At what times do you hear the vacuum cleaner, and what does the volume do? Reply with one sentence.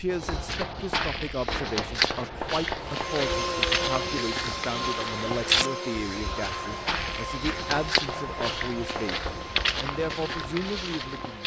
The vacuum cleaner can be heard from 2.8 to 11.4 s, getting quieter.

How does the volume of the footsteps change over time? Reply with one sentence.
The volume of the footsteps stays about the same.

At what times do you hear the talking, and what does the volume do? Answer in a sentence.
You can hear the talking from 0.0 to 11.4 s, at a steady volume.